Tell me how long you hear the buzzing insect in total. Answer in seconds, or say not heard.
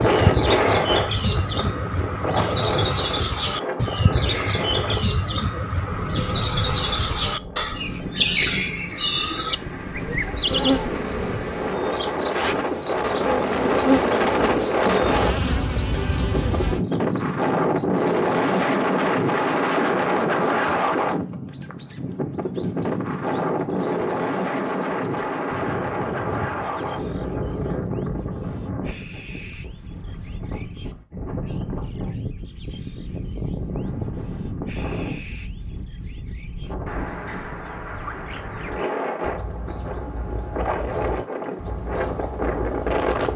6 s.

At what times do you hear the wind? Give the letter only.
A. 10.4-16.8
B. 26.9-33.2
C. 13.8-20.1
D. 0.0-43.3
D.